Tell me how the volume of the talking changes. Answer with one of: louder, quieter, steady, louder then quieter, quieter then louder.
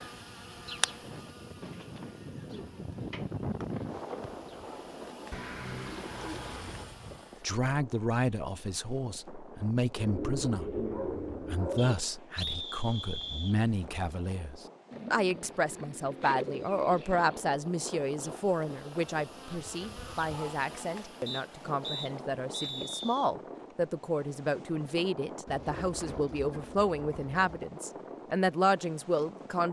steady.